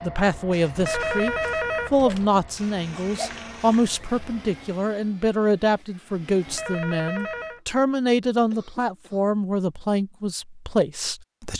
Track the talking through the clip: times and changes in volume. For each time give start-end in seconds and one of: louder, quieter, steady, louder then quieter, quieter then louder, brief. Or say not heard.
0.0-11.5 steady.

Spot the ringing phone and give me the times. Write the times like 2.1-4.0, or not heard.
0.8-2.3, 6.5-7.6.